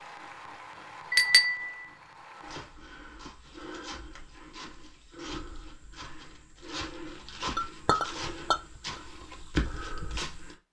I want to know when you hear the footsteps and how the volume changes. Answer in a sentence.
The footsteps can be heard from 2.4 to 10.6 s, getting louder.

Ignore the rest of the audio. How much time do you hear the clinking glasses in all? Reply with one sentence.
The clinking glasses can be heard for 2 seconds in total.